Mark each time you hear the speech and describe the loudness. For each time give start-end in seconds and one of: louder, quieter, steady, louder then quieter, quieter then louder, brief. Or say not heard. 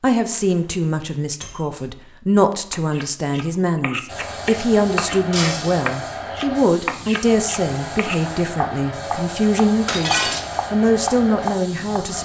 0.0-12.1 steady.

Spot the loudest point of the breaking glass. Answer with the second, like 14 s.
10 s.